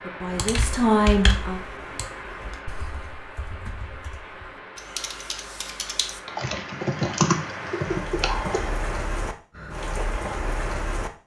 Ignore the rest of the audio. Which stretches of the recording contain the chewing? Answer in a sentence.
The chewing can't be heard in this clip.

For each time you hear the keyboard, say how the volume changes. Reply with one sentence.
You can hear the keyboard from 0.3 to 8.7 s, getting quieter then louder.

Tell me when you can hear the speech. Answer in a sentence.
The speech can be heard from 0.0 to 1.6 s.